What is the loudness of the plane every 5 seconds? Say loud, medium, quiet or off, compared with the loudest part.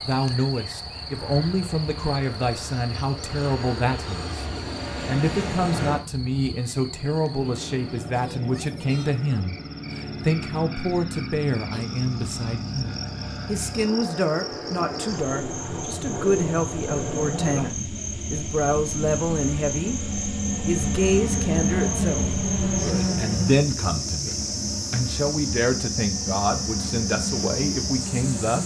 medium, medium, medium, medium, loud, medium.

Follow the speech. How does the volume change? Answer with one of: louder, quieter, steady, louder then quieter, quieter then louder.
steady.